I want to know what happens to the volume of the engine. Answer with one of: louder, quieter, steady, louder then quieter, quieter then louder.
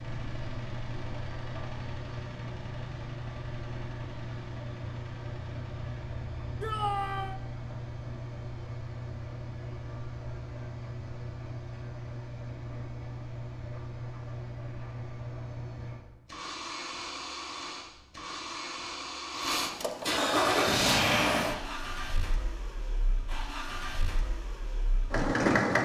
louder.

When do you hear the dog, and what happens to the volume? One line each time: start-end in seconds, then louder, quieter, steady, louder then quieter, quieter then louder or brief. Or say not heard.
not heard.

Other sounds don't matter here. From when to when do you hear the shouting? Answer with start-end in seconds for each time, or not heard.
6.6-7.4.